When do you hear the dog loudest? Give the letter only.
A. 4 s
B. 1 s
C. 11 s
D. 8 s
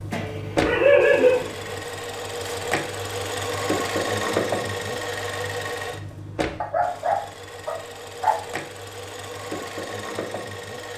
B.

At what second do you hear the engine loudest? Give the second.
4 s.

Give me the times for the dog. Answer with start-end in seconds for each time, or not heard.
0.1-1.8, 6.6-8.4.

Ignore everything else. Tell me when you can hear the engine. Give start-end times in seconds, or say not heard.
0.0-10.9.